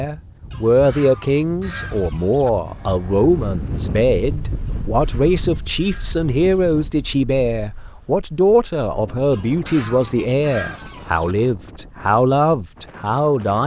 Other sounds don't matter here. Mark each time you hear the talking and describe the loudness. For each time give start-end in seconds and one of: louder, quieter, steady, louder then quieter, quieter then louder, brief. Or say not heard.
0.0-13.6 steady.